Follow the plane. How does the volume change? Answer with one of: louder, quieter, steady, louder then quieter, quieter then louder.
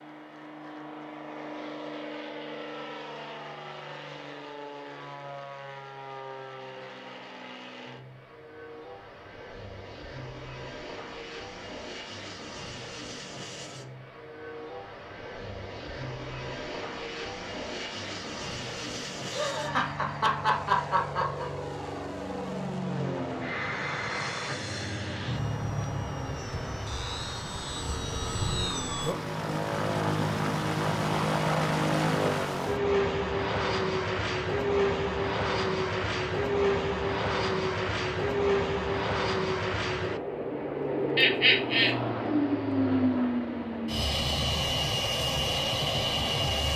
louder.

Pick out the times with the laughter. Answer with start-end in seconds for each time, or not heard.
19.3-21.4, 41.1-42.0.